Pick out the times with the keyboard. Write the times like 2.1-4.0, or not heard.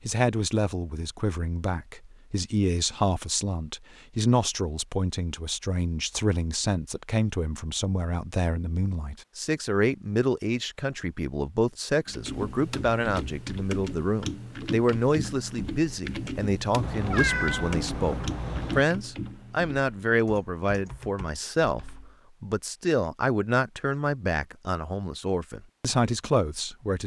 12.1-22.2.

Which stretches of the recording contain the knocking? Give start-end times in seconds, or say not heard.
not heard.